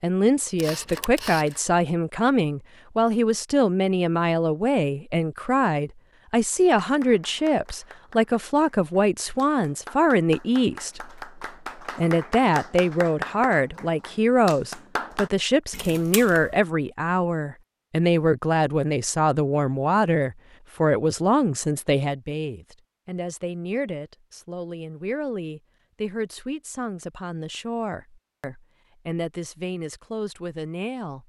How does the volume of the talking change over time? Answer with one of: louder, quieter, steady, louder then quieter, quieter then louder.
quieter.